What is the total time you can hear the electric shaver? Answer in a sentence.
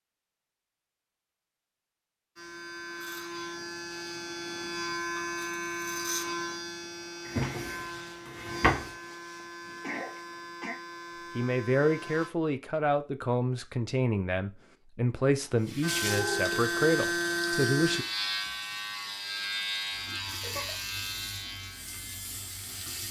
You can hear the electric shaver for 17 seconds altogether.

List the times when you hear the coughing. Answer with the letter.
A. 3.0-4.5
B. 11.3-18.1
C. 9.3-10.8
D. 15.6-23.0
C.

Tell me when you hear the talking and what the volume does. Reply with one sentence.
The talking can be heard from 11.3 to 18.1 s, at a steady volume.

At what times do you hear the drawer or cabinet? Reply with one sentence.
You can hear the drawer or cabinet from 7.2 to 8.9 s.